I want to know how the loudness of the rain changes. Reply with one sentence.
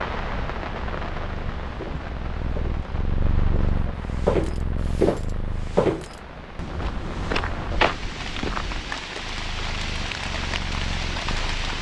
The volume of the rain goes down, then up.